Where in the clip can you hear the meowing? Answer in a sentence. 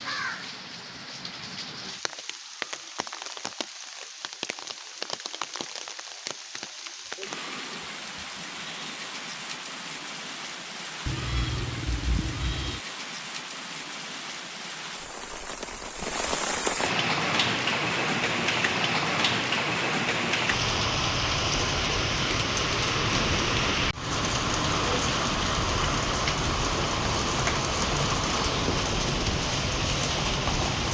The meowing can be heard from 11.1 to 12.8 s.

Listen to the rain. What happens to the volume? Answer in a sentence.
The volume of the rain goes up.